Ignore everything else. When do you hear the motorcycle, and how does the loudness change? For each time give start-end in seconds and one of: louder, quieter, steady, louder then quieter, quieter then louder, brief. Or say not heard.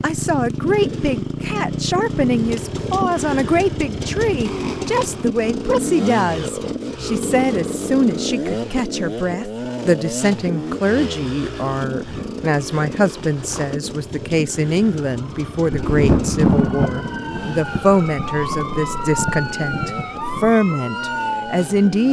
0.0-22.0 quieter.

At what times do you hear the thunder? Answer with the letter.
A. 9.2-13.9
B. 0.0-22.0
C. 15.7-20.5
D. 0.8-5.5
C.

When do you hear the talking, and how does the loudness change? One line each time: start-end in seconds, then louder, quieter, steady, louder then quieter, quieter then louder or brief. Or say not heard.
0.0-22.0 steady.